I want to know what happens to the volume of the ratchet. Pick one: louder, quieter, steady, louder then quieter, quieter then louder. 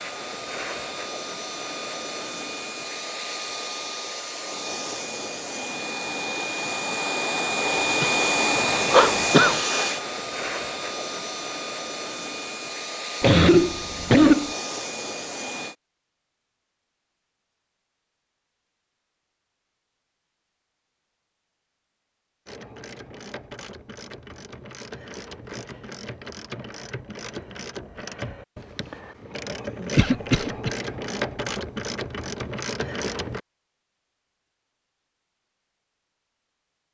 louder.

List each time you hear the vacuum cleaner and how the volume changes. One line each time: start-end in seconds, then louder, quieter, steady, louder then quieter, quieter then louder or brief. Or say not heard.
0.0-15.8 louder then quieter.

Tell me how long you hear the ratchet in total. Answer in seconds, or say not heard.
11 s.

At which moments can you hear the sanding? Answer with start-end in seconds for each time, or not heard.
not heard.